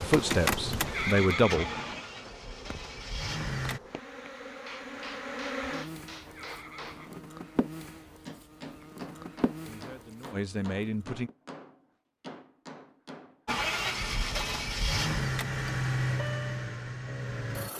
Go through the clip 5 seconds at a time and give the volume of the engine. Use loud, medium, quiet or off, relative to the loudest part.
loud, off, loud, loud.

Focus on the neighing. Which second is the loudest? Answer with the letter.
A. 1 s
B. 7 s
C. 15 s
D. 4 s
A.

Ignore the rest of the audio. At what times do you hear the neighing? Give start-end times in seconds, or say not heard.
0.8-2.0, 6.2-7.2, 13.6-14.8.